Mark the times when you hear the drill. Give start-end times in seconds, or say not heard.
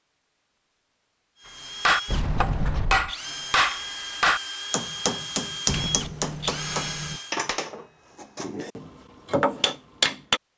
1.4-7.4.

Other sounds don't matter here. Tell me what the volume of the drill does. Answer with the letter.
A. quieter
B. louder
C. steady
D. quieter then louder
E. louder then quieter
C.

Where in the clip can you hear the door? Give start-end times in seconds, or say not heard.
2.0-3.1, 5.7-7.2.